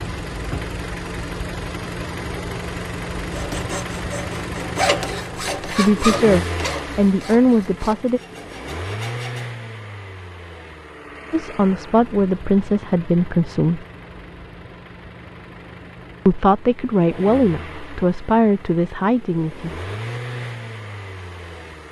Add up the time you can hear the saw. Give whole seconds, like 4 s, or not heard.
6 s.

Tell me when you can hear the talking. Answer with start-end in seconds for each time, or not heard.
5.6-8.2, 11.3-13.8, 16.2-19.7.